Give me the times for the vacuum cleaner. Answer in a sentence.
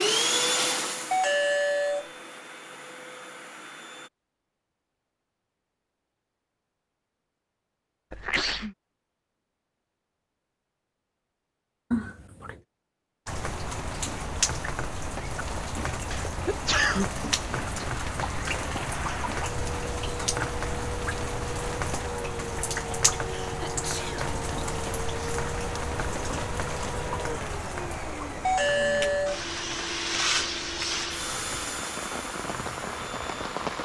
You can hear the vacuum cleaner from 0.0 to 4.1 s and from 17.5 to 33.8 s.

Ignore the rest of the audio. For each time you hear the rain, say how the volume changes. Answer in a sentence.
The rain can be heard from 13.2 to 33.8 s, getting quieter.